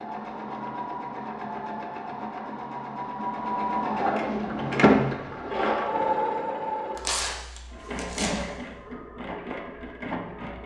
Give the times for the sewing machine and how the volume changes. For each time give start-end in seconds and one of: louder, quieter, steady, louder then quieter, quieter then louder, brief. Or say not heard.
0.0-10.6 louder then quieter.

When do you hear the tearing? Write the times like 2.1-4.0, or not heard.
7.0-8.4.